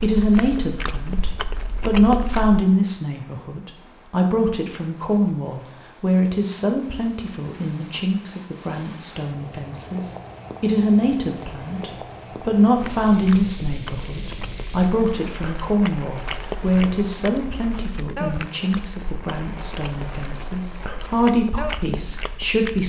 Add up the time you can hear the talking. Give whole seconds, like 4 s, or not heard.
23 s.